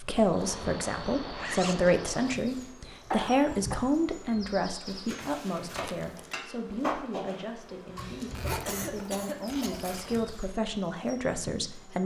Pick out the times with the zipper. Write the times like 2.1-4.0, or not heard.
0.3-2.3, 5.2-6.2, 8.3-10.2.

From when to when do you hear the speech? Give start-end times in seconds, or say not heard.
0.0-12.0.